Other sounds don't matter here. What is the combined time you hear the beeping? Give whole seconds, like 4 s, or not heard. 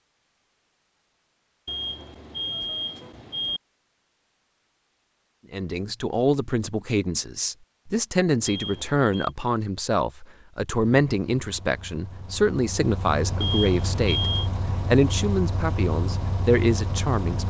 4 s.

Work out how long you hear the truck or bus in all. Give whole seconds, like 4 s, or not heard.
7 s.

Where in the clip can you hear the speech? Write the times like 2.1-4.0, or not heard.
5.5-17.4.